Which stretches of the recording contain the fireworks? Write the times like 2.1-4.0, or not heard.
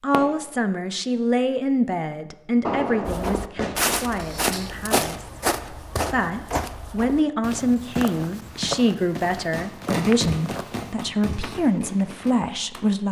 0.1-0.6, 2.6-3.8, 9.5-13.0.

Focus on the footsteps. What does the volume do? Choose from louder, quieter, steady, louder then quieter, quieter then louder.
quieter.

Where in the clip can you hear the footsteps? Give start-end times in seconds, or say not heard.
3.0-12.6.